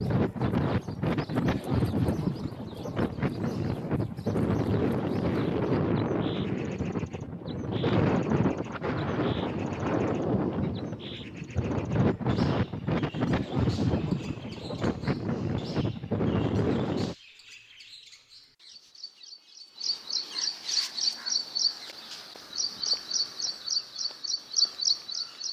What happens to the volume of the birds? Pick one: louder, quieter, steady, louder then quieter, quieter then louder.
louder.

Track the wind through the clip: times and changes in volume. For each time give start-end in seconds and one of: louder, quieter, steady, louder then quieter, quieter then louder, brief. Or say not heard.
0.0-17.1 steady.